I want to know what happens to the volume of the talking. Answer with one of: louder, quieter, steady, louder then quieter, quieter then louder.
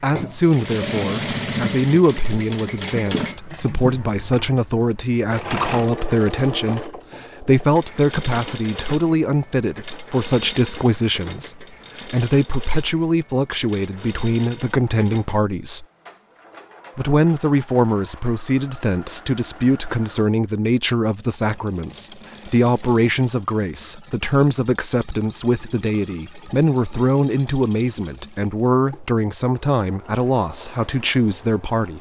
steady.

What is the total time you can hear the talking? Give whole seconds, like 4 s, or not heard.
31 s.